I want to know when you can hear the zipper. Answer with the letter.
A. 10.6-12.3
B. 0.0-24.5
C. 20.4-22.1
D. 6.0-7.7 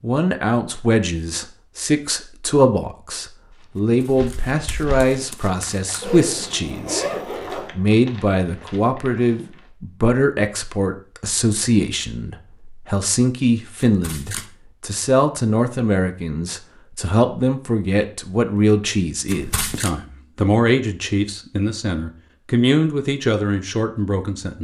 D.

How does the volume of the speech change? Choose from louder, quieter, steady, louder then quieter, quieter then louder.
steady.